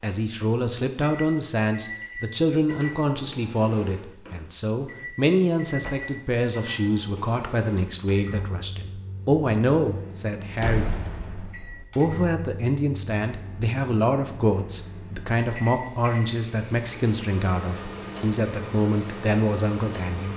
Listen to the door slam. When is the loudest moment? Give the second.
11 s.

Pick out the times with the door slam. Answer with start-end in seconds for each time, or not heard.
5.8-6.2, 10.6-11.8.